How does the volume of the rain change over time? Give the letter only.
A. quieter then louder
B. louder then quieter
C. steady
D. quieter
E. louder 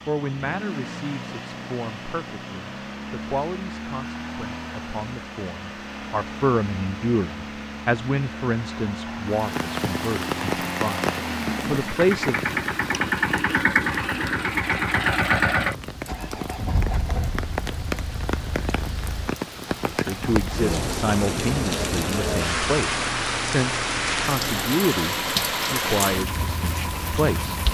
A.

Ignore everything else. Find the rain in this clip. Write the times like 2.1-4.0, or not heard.
9.2-27.6.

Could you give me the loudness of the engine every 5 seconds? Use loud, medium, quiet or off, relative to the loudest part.
medium, medium, loud, loud, medium, medium.